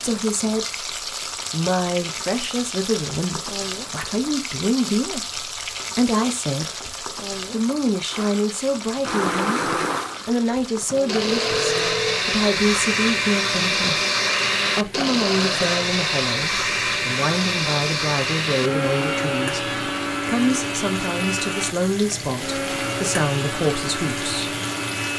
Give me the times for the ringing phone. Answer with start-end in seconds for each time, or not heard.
11.2-12.2.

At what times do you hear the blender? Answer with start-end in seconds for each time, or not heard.
8.1-25.1.